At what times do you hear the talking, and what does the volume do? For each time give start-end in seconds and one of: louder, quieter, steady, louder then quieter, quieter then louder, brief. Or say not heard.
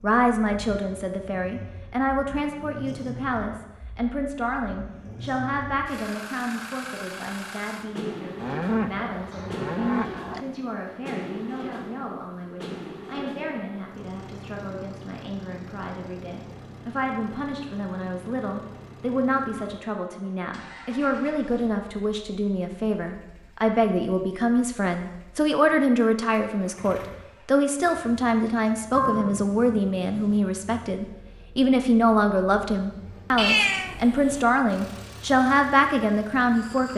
0.0-36.9 quieter then louder.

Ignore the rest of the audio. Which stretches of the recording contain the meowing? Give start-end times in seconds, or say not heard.
33.4-34.5.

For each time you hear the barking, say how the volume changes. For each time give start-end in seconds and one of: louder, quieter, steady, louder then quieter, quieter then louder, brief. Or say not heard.
not heard.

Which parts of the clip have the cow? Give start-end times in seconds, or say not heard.
8.4-10.4, 28.9-30.4.